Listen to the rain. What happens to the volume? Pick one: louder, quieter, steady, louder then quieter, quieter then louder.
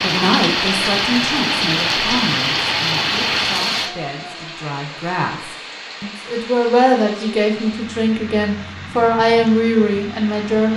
quieter.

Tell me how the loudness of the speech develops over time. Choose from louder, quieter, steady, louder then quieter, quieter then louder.
quieter then louder.